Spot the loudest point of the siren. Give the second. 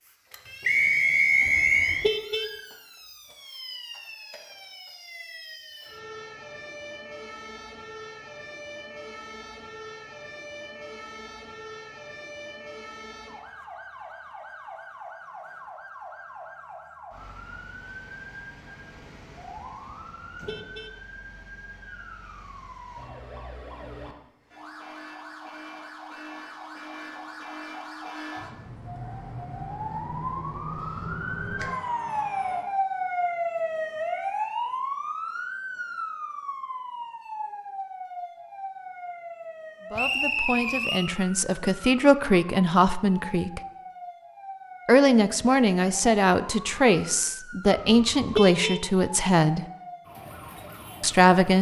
33 s.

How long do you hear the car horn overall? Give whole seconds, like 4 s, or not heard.
3 s.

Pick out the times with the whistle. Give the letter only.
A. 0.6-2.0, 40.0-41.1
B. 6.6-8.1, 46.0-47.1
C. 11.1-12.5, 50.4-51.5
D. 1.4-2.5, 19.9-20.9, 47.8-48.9
A.